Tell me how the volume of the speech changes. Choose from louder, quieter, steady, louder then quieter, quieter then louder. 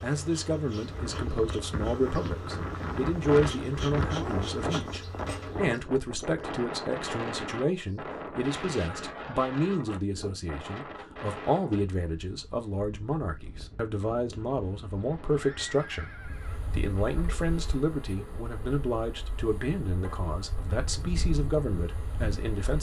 steady.